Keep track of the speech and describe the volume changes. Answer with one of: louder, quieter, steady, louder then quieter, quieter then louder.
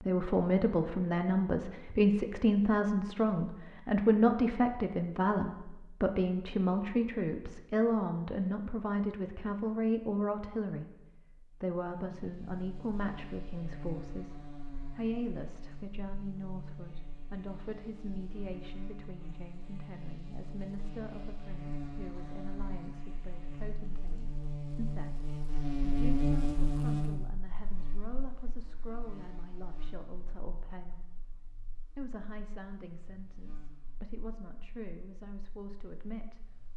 quieter.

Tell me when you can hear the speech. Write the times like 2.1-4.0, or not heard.
0.0-36.7.